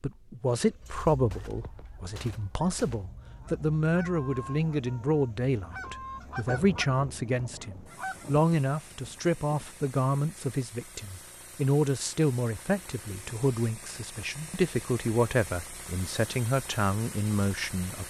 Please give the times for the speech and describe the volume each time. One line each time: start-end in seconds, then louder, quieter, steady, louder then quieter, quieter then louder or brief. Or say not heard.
0.0-18.0 steady.